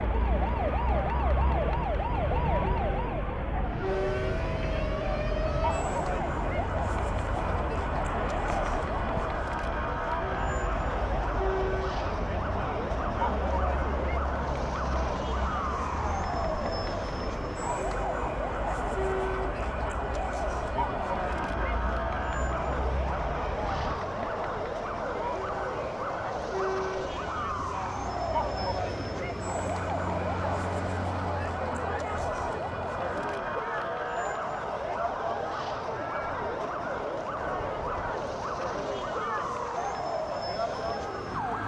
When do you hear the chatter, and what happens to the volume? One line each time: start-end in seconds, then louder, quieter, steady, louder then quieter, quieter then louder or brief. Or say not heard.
0.0-41.6 steady.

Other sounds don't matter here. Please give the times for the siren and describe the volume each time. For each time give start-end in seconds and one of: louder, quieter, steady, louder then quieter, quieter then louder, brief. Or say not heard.
0.0-41.6 steady.